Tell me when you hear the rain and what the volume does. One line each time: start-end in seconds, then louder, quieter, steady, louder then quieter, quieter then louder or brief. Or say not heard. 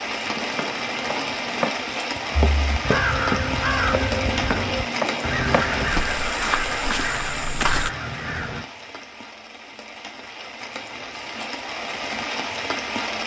0.0-13.2 quieter then louder.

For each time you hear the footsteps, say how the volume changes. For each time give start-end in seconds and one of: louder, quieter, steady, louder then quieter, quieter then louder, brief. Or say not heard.
0.3-7.9 steady.